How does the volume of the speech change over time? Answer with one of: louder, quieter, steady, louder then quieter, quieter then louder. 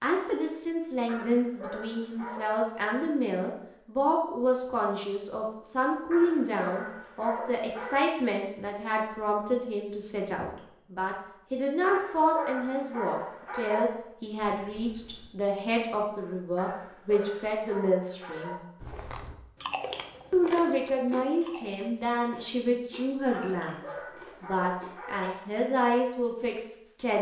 steady.